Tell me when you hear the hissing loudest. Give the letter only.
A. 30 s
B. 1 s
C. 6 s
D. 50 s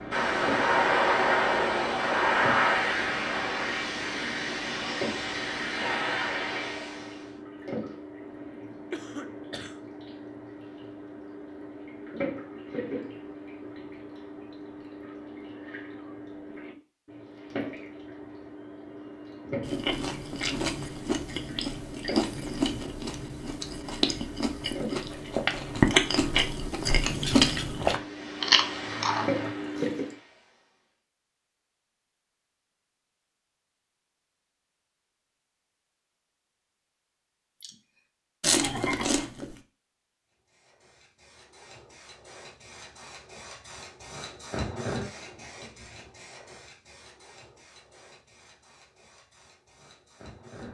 B.